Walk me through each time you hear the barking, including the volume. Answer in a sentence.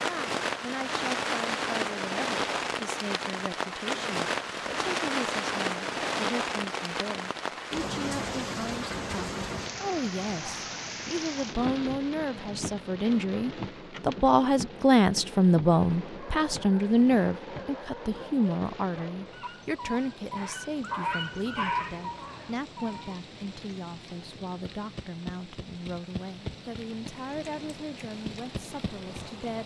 You can hear the barking from 16.1 to 23.2 s, getting louder.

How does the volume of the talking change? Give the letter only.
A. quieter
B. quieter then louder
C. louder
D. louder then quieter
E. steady
D.